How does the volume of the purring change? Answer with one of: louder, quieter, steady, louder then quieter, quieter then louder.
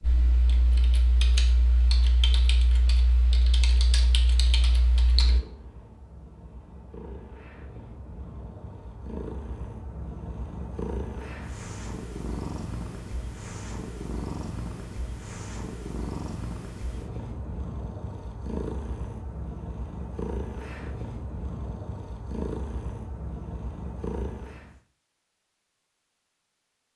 louder.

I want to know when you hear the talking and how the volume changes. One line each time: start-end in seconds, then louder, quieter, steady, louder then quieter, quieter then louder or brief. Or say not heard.
not heard.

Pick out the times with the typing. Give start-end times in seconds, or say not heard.
0.0-5.4.